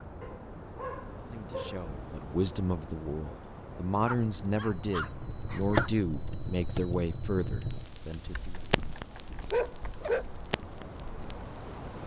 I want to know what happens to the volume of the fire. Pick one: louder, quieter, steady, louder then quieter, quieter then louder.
quieter.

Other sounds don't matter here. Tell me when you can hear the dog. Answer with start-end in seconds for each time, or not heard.
0.2-1.9, 4.0-5.9, 8.2-10.2.